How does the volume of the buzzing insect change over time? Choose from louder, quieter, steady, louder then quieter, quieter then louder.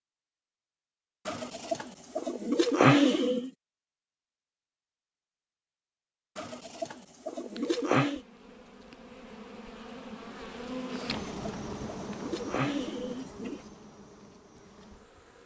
louder then quieter.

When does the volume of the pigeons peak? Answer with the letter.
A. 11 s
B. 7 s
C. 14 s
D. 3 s
D.